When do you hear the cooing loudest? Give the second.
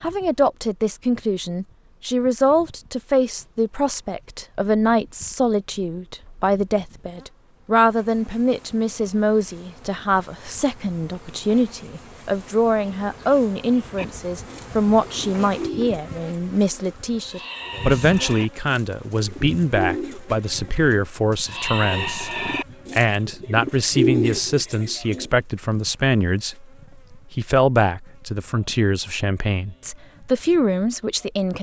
24 s.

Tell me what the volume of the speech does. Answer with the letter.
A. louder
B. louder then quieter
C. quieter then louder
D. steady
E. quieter
D.